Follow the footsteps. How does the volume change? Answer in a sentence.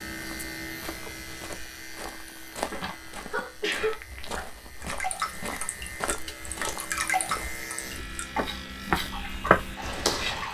The volume of the footsteps goes up.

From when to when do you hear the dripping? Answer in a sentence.
You can hear the dripping from 4.8 to 10.5 s.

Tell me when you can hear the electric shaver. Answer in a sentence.
You can hear the electric shaver from 0.0 to 10.5 s.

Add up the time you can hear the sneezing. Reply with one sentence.
You can hear the sneezing for 2 seconds altogether.